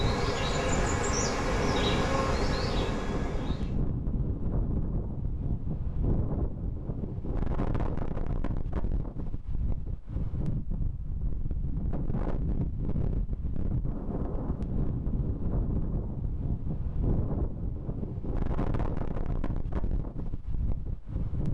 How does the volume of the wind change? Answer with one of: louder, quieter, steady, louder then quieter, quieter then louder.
steady.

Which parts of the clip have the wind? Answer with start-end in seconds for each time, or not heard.
0.0-21.4.